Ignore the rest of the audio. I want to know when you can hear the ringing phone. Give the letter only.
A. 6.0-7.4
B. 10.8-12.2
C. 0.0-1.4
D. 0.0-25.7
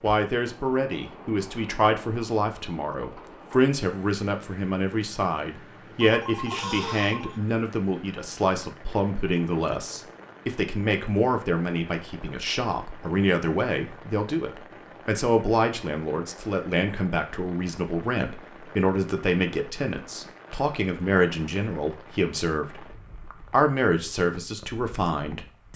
A.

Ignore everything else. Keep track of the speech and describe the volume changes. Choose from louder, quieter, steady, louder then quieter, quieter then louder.
steady.